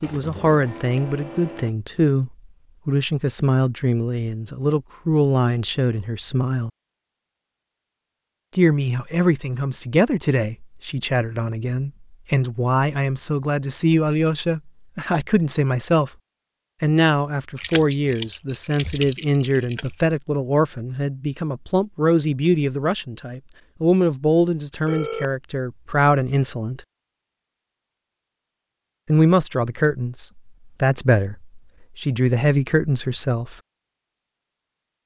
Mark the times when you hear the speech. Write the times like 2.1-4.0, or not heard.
0.0-6.7, 8.6-16.1, 16.8-26.8, 29.1-33.5.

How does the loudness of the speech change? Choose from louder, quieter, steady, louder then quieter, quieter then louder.
steady.